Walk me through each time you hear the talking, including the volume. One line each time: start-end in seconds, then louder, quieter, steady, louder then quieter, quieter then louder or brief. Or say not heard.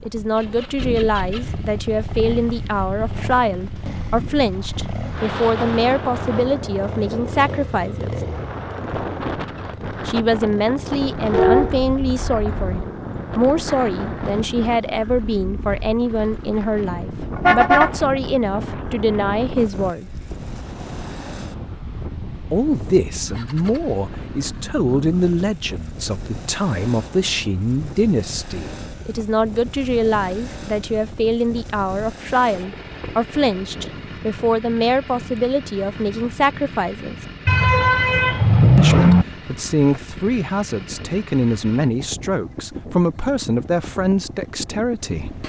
0.0-8.2 steady
10.1-20.1 steady
22.5-37.1 steady
38.8-45.4 steady.